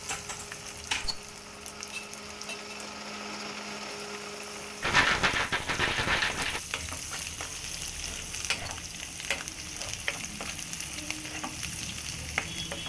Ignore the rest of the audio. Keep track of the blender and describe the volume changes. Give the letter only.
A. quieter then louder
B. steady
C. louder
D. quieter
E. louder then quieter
C.